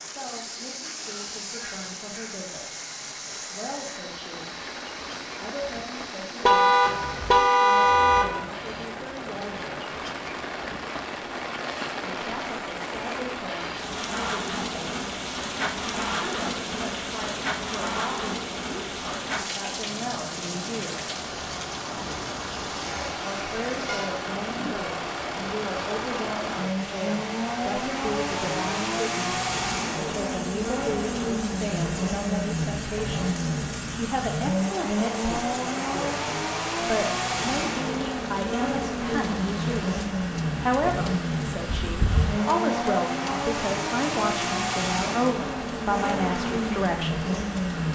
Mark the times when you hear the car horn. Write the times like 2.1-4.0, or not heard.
6.4-8.4, 22.8-24.1, 41.9-42.3.